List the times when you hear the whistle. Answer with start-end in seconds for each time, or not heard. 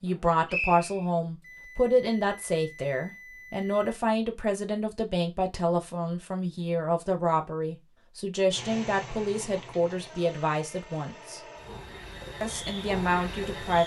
0.5-1.1.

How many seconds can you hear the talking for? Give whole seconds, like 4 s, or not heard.
13 s.